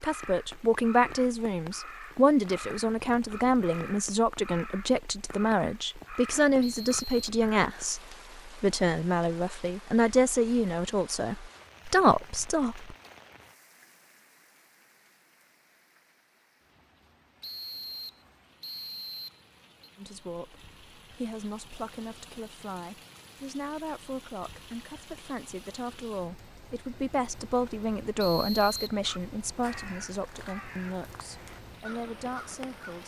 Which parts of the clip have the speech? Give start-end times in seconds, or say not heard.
0.0-12.9, 19.9-33.0.